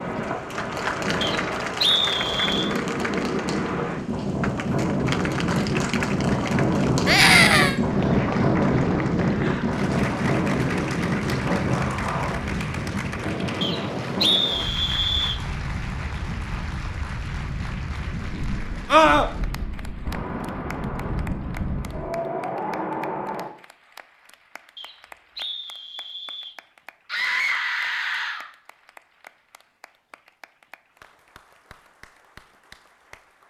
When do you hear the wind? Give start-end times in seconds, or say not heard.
0.0-23.5.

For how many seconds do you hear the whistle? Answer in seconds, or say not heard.
5 s.